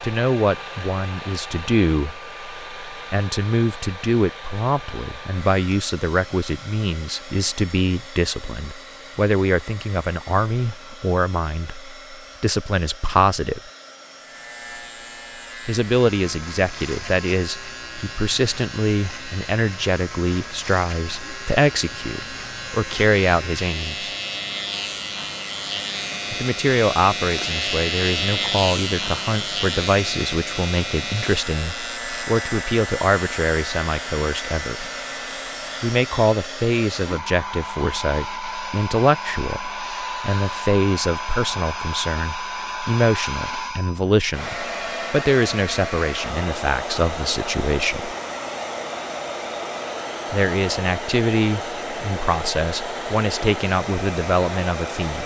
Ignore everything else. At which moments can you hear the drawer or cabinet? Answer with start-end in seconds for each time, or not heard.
not heard.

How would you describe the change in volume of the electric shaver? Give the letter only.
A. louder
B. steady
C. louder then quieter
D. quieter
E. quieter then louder
C.